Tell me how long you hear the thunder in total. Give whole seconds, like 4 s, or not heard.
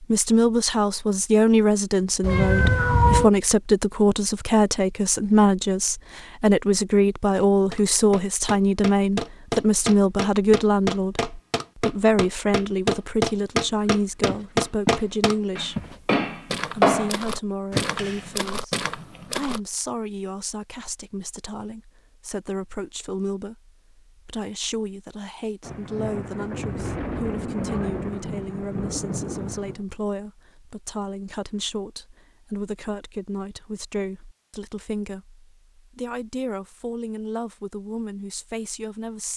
4 s.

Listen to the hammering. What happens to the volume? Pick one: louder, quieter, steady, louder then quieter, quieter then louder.
louder.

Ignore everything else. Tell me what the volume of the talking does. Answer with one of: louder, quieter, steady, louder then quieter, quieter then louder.
quieter.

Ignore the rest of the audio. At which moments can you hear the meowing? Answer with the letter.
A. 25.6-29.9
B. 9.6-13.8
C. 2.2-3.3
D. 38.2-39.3
C.